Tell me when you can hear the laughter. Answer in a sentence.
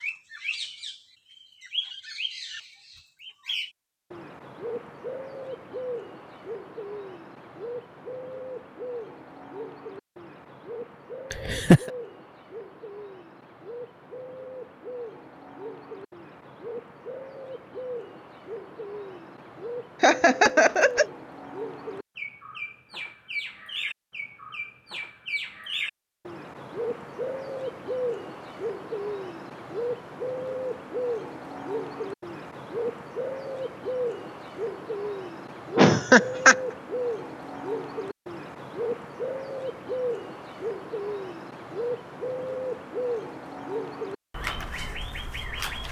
The laughter can be heard from 11.3 to 11.9 s, from 20.0 to 21.1 s and from 35.8 to 36.5 s.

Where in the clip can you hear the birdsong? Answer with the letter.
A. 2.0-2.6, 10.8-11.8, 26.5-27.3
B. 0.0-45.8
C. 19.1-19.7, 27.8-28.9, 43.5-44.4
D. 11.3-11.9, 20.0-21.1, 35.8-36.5
B.